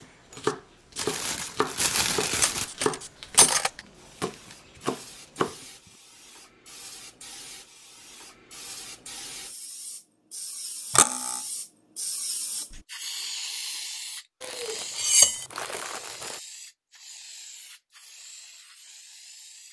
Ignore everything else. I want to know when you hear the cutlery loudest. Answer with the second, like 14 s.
15 s.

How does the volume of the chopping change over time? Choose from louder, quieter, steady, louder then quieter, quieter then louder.
quieter.